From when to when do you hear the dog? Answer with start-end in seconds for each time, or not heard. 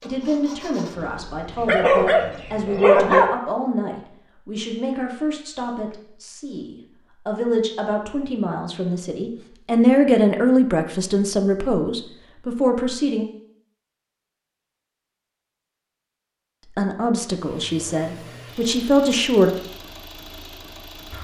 1.6-3.3.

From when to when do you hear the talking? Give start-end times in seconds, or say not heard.
0.0-13.2, 16.8-19.5.